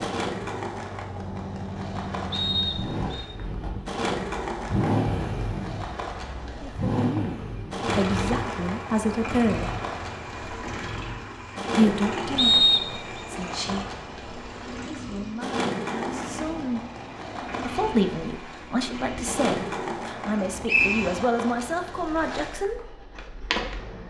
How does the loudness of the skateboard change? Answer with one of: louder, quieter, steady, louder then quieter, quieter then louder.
steady.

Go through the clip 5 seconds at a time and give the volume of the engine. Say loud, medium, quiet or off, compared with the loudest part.
loud, loud, medium, medium, medium.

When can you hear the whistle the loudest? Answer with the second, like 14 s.
13 s.